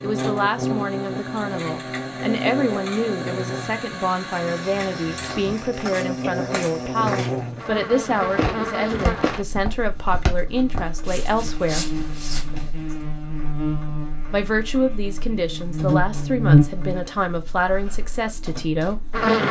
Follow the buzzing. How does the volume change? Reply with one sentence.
The loudness of the buzzing goes up.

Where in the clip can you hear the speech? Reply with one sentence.
You can hear the speech from 0.0 to 11.9 s and from 14.3 to 19.1 s.